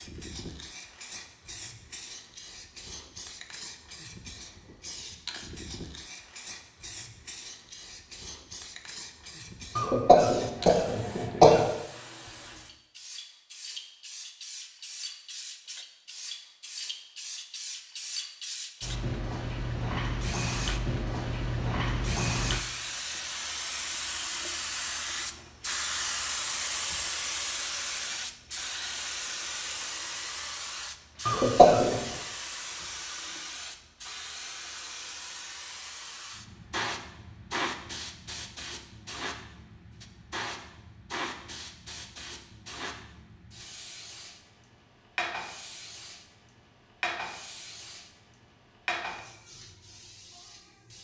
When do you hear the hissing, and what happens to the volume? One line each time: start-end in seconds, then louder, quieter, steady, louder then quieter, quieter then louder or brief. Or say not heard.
0.0-51.0 louder then quieter.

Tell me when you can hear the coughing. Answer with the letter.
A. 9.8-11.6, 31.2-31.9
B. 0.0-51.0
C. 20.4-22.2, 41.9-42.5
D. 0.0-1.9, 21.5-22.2
A.